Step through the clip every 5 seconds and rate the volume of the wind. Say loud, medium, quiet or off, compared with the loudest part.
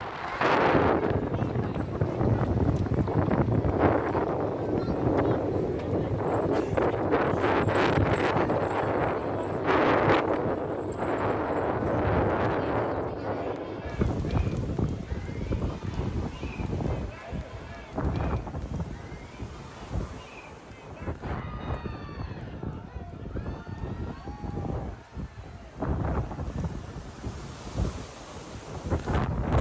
loud, loud, loud, medium, quiet, medium.